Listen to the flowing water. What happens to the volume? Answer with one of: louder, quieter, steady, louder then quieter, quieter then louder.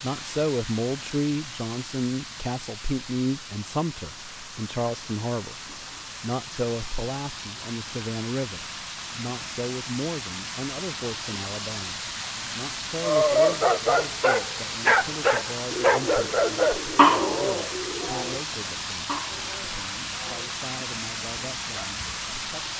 louder.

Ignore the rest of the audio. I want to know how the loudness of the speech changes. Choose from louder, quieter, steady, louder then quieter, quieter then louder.
quieter.